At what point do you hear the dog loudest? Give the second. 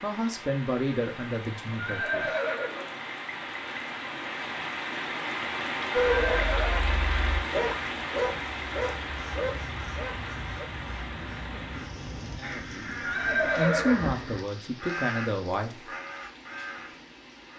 6 s.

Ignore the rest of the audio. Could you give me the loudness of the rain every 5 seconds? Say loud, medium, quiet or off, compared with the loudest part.
medium, loud, medium, quiet.